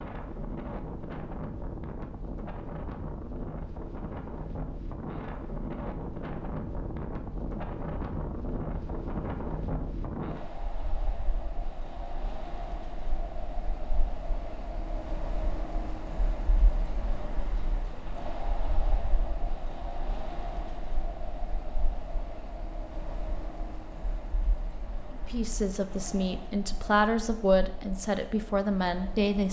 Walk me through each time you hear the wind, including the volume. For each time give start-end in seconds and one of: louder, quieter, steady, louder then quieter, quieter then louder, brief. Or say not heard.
0.0-29.4 quieter.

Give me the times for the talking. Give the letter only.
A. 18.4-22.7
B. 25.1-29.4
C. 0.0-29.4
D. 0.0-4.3
B.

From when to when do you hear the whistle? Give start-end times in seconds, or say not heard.
not heard.